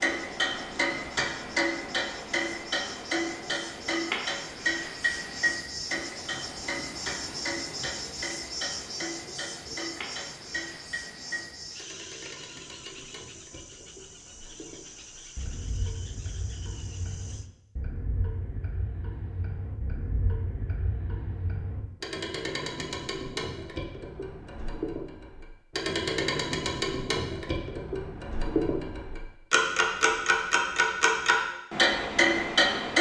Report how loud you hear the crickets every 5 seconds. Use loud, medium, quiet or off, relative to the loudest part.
medium, loud, medium, medium, off, off, off.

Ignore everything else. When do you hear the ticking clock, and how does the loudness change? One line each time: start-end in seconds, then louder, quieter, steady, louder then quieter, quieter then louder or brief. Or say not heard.
0.0-32.9 quieter then louder.